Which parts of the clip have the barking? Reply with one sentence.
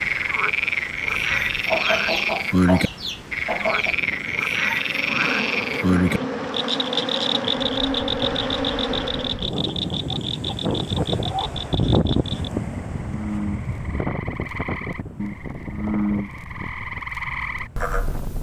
The barking can't be heard in this clip.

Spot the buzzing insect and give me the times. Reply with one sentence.
You can hear the buzzing insect from 4.5 to 9.5 s.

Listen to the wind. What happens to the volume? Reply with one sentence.
The loudness of the wind goes up, then down.